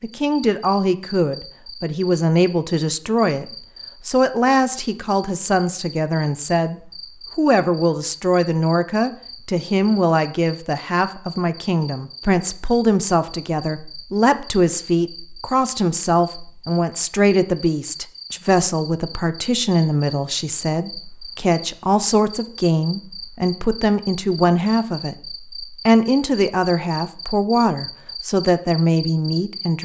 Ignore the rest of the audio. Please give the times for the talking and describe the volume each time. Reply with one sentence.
The talking can be heard from 0.0 to 29.8 s, at a steady volume.